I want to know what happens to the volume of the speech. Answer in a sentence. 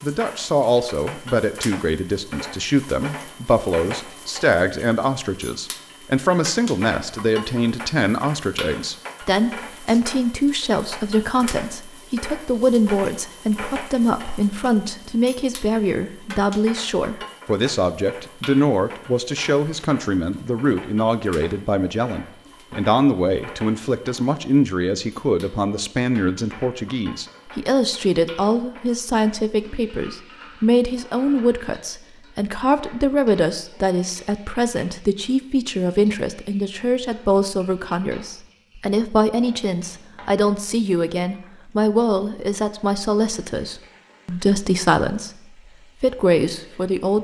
The loudness of the speech stays about the same.